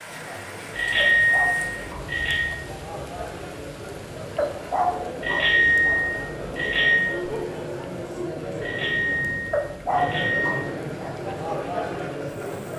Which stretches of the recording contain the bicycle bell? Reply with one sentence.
The bicycle bell can be heard from 0.8 to 2.5 s, from 5.2 to 7.0 s and from 8.6 to 10.6 s.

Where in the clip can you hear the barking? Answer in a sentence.
You can hear the barking from 0.9 to 2.6 s, from 4.3 to 6.0 s and from 9.5 to 11.1 s.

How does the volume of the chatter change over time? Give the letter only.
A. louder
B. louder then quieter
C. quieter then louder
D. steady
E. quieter
A.